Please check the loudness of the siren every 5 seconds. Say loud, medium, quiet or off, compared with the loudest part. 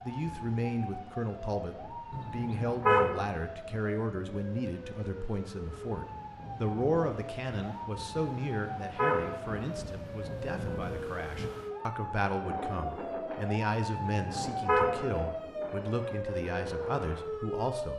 medium, medium, loud, loud.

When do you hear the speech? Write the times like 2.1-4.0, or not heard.
0.0-17.9.